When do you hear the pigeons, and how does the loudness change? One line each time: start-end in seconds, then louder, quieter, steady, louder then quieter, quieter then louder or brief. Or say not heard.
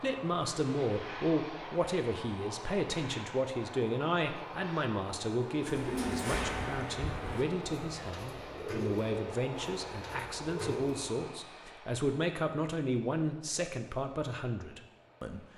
5.7-11.1 quieter.